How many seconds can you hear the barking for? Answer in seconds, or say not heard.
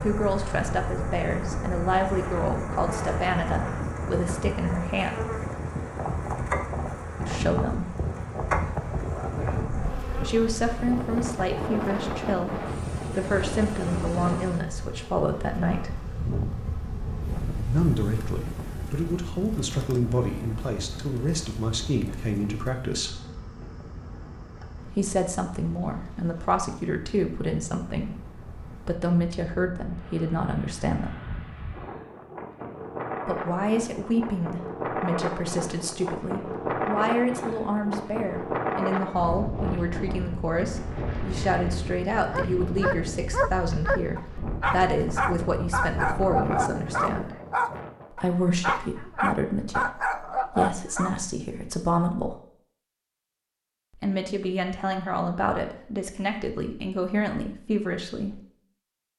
9 s.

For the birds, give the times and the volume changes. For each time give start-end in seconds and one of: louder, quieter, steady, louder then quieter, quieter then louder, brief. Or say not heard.
not heard.